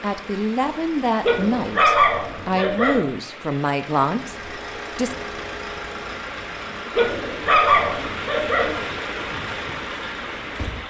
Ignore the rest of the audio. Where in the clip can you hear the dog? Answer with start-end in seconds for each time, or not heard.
1.2-3.0, 7.0-8.8.